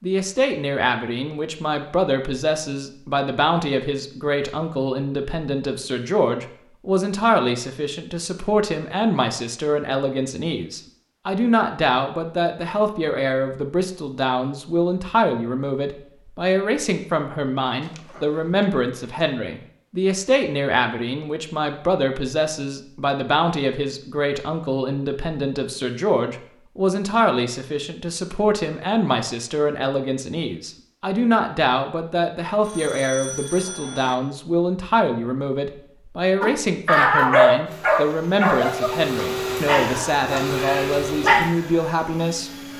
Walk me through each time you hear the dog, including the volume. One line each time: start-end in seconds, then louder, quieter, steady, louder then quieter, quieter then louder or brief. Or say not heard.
36.4-41.5 quieter.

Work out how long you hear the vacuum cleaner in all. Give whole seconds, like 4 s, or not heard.
5 s.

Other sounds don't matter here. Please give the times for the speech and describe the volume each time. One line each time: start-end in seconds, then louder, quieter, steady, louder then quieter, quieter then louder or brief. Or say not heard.
0.0-42.5 steady.